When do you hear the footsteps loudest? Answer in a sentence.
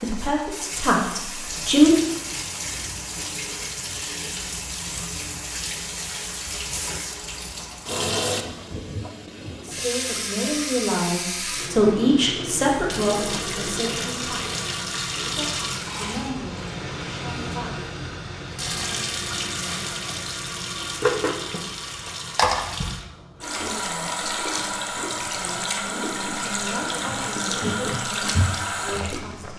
The volume of the footsteps peaks at 28 seconds.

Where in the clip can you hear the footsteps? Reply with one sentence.
You can hear the footsteps from 27.1 to 29.5 s.